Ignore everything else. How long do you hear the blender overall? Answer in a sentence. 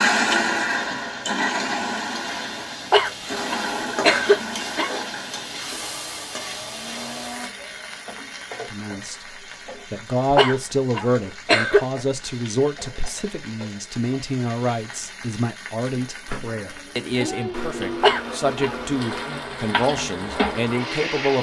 You can hear the blender for 11 seconds altogether.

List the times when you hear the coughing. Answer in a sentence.
The coughing can be heard from 2.9 to 4.9 s, from 10.3 to 11.8 s and from 18.0 to 18.8 s.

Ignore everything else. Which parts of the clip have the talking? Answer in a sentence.
The talking can be heard from 8.7 to 9.2 s and from 9.9 to 21.3 s.